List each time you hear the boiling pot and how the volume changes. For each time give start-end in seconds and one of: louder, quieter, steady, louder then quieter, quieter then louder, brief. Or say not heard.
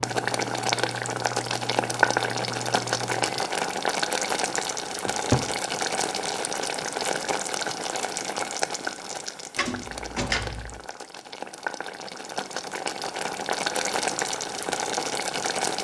0.0-15.7 quieter then louder.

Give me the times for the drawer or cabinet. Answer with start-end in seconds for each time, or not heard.
5.0-5.6, 9.6-10.8.